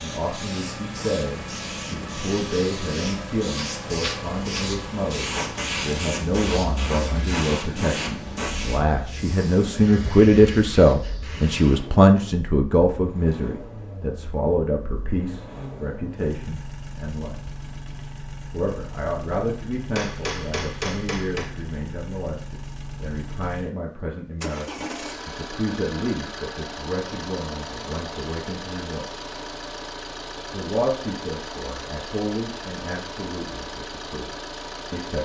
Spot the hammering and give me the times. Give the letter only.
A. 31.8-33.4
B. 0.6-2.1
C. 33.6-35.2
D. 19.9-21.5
D.